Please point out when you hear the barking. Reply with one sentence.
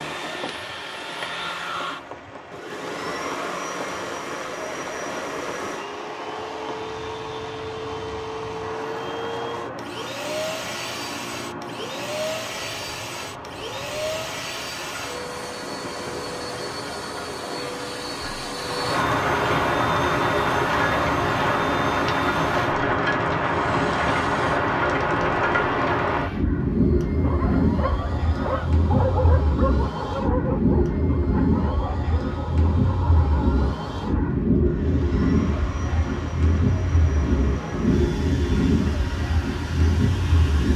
You can hear the barking from 27.1 to 34.3 s.